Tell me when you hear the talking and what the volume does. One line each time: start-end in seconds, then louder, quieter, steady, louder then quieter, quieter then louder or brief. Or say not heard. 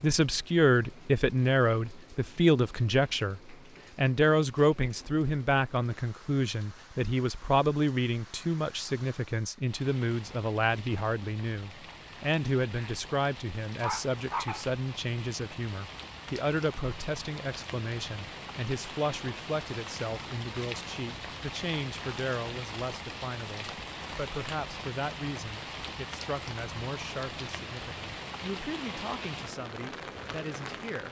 0.0-31.0 quieter.